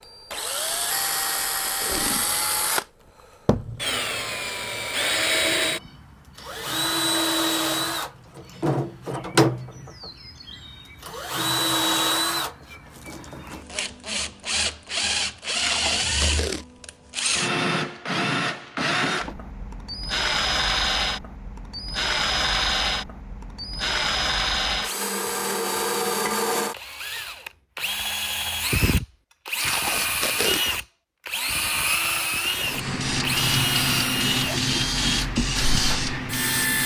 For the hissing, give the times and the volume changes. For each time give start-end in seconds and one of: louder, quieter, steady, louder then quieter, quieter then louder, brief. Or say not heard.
32.6-36.8 steady.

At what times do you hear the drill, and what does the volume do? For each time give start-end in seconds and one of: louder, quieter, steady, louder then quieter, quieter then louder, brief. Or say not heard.
0.0-36.8 steady.